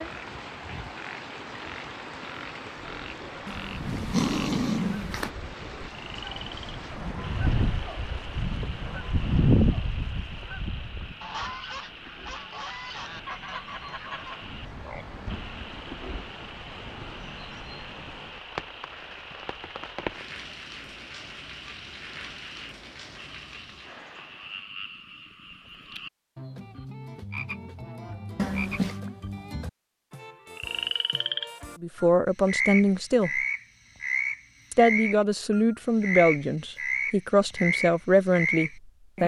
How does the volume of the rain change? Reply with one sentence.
The volume of the rain goes down, then up.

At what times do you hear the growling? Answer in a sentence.
The growling can be heard from 3.5 to 5.3 s and from 28.4 to 29.0 s.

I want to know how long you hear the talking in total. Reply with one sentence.
The talking can be heard for 6 seconds in total.